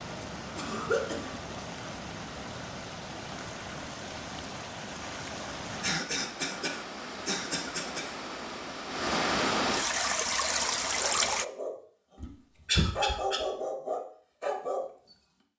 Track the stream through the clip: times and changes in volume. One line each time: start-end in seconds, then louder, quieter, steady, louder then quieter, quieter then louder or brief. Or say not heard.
0.0-11.4 louder.